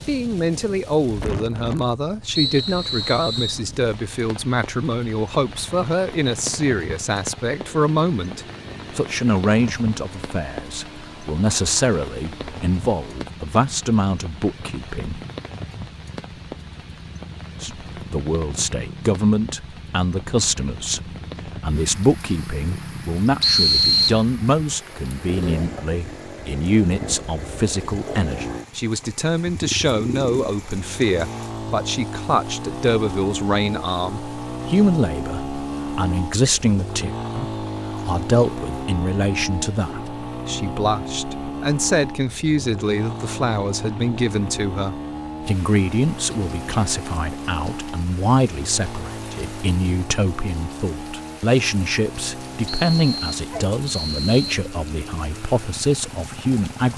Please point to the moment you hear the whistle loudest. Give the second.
24 s.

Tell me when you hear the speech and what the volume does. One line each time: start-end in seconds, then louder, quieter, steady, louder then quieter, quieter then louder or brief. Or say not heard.
0.1-15.2 steady
17.6-56.9 steady.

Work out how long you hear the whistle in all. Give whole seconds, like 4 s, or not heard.
4 s.